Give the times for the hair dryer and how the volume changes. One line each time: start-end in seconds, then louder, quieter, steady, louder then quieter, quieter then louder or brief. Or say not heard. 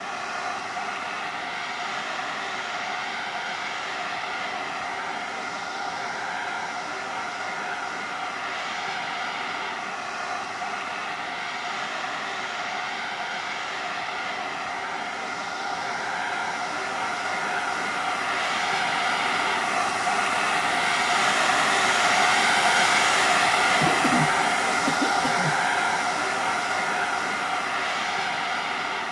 0.0-29.0 louder.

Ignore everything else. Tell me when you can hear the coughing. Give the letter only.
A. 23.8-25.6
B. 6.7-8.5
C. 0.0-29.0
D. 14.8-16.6
A.